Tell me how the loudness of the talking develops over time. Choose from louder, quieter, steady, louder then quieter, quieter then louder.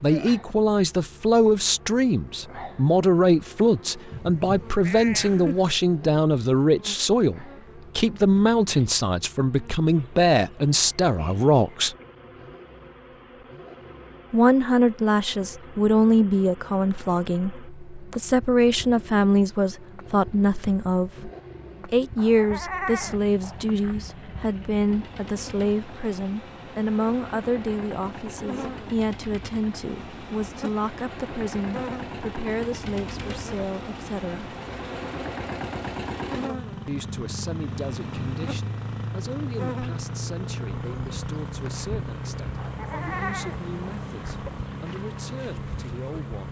quieter.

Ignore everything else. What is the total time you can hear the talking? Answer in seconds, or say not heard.
42 s.